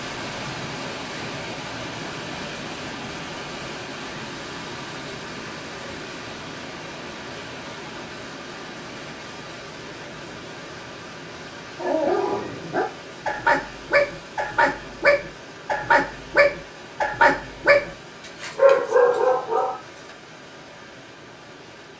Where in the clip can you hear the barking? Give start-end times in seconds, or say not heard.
11.8-19.8.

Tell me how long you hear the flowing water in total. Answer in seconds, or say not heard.
22 s.